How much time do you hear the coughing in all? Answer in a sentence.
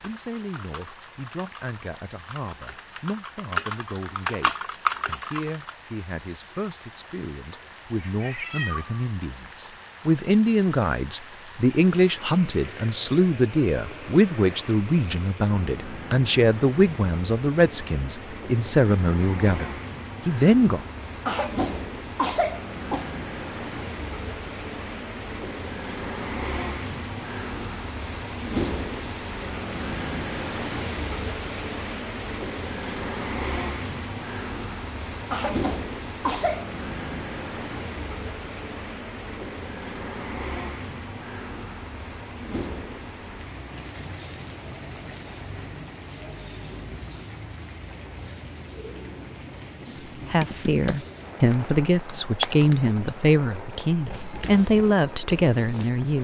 The coughing can be heard for 3 seconds in total.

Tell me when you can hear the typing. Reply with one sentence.
You can hear the typing from 0.0 to 5.8 s and from 50.1 to 56.0 s.